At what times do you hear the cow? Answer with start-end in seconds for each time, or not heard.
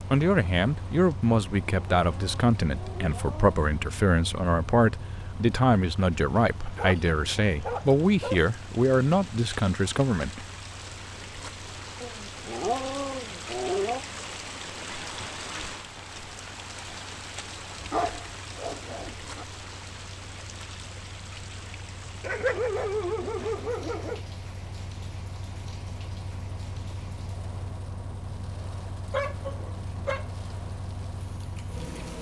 not heard.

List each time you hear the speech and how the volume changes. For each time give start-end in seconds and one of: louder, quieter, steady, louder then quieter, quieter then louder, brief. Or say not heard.
0.1-10.4 steady.